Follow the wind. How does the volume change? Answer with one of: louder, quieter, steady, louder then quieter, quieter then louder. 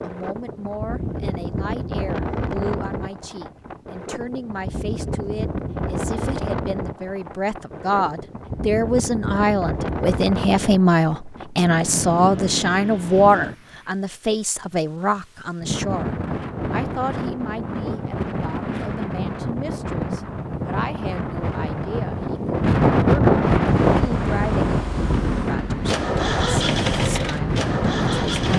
louder.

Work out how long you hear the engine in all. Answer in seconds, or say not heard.
5 s.